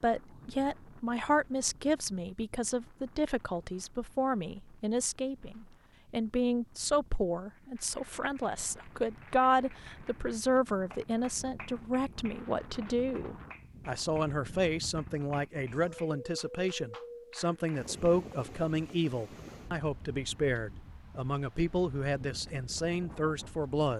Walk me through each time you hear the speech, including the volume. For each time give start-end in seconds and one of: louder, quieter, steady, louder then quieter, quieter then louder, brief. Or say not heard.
0.0-23.9 steady.